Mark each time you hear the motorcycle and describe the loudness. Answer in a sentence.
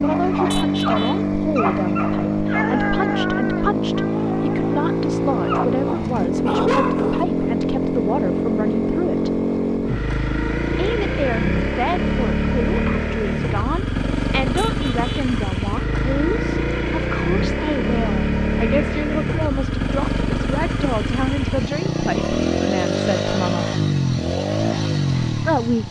You can hear the motorcycle from 0.0 to 25.8 s, at a steady volume.